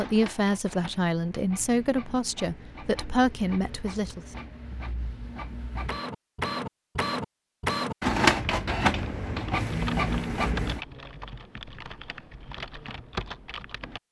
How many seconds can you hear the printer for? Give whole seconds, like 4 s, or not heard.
11 s.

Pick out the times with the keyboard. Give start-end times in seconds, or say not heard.
8.4-14.0.